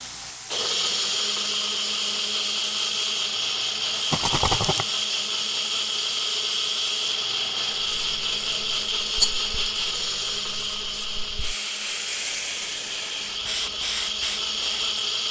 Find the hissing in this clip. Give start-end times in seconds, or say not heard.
0.0-15.0.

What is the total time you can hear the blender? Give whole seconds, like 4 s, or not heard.
15 s.